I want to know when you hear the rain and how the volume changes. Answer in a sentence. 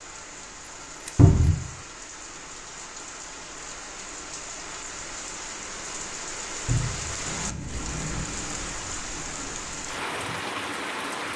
You can hear the rain from 0.0 to 11.3 s, getting louder.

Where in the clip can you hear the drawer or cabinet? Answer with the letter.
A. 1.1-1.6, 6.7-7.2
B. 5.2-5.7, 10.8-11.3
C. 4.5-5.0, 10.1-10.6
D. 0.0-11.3
A.